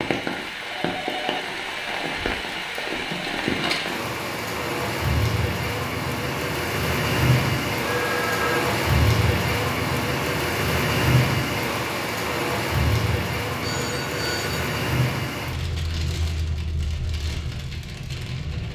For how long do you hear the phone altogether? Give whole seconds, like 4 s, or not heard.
3 s.